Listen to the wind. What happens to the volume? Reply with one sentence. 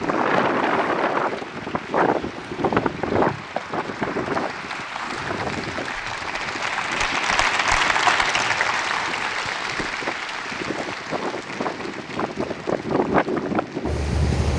The loudness of the wind goes down, then up.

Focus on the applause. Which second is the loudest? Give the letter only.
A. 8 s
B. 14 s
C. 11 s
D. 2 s
A.